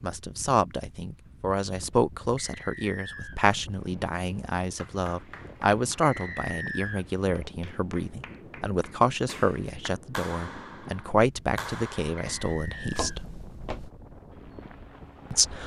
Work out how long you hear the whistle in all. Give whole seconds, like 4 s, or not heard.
3 s.